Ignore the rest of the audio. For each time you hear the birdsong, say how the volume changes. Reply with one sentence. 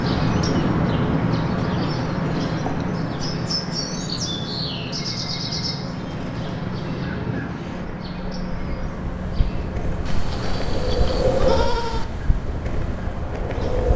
You can hear the birdsong from 0.0 to 13.8 s, getting quieter.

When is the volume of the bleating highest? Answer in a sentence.
The loudest moment of the bleating is at 12 seconds.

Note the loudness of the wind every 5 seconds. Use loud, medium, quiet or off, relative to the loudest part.
loud, medium, loud.